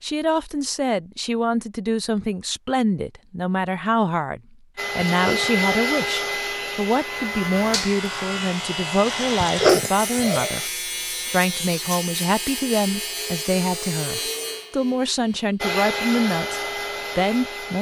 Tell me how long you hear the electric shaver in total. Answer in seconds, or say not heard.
9 s.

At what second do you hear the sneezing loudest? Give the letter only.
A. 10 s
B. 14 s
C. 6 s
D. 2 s
A.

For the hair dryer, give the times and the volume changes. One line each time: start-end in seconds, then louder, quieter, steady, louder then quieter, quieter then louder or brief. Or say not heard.
4.8-10.7 quieter
15.6-17.7 brief.